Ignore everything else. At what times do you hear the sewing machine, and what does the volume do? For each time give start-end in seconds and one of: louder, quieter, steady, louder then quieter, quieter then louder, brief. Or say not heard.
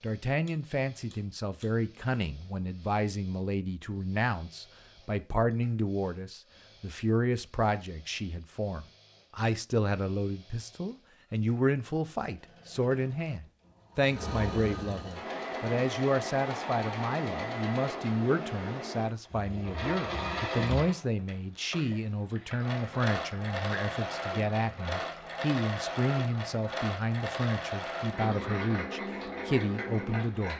0.0-30.5 louder.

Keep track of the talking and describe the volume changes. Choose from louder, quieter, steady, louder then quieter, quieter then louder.
steady.